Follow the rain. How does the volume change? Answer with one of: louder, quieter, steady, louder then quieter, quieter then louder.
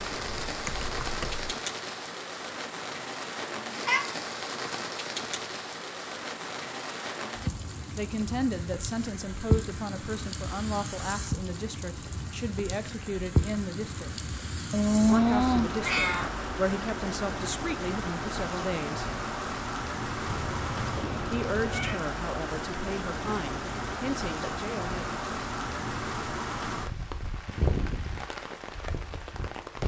steady.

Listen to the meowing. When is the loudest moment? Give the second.
15 s.